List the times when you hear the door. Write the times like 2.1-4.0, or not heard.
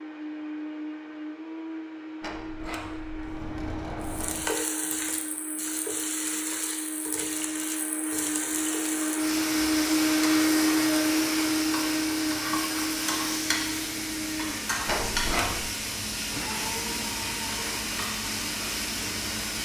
2.2-4.5, 14.8-15.7.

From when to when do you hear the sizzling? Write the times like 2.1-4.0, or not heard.
4.0-19.5.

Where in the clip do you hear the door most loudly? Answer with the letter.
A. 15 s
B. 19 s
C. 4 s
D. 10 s
A.